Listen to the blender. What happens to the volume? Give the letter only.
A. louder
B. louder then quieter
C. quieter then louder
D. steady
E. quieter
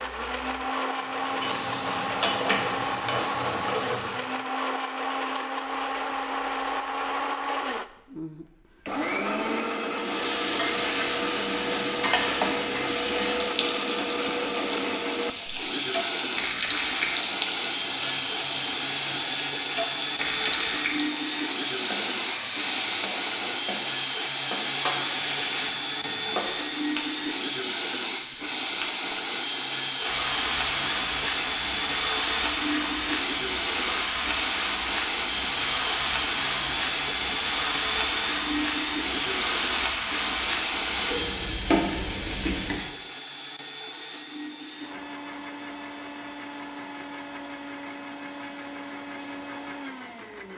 E.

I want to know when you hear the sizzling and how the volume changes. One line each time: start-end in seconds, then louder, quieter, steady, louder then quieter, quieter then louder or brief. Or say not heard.
0.0-4.3 louder
9.9-42.9 steady.